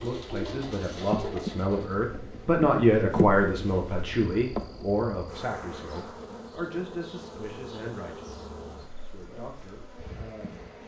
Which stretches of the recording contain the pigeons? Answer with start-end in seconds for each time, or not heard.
0.0-2.0.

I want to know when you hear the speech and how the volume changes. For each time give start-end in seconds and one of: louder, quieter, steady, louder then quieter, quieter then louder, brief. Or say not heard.
0.0-10.8 louder then quieter.